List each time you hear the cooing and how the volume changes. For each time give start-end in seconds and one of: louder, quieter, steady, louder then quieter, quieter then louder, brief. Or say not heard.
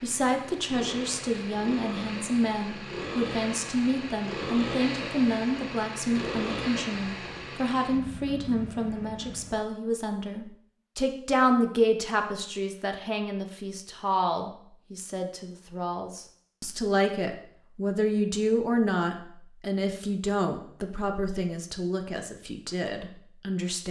not heard.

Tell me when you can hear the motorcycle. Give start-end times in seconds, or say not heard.
0.0-9.6.